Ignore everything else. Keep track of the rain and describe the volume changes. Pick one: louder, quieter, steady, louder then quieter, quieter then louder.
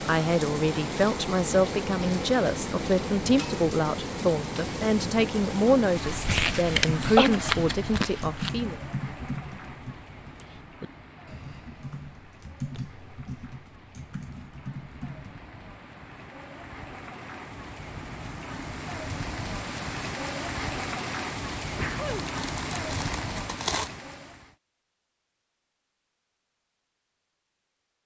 quieter then louder.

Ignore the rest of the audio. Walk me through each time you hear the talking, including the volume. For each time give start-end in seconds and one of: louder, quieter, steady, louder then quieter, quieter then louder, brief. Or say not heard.
0.1-8.8 steady.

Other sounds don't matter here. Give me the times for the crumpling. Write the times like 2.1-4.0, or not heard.
6.0-8.5, 22.2-23.9.